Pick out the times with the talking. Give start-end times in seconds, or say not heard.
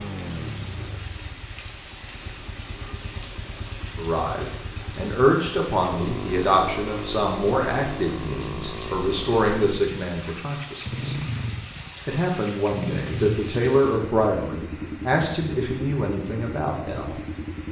4.0-11.2, 12.1-17.2.